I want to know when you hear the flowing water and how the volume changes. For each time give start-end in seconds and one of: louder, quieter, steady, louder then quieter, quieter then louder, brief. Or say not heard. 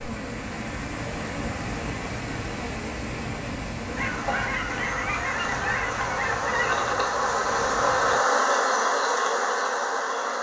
0.0-8.2 quieter.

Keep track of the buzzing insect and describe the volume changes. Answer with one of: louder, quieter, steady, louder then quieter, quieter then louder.
louder.